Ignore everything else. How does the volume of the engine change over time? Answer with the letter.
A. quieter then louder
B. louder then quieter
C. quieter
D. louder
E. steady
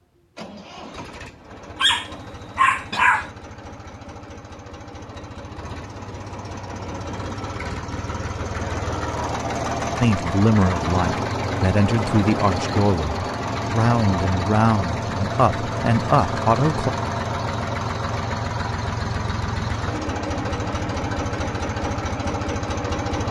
D.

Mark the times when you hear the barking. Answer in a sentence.
You can hear the barking from 1.8 to 3.3 s.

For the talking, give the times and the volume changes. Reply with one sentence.
The talking can be heard from 10.0 to 16.9 s, at a steady volume.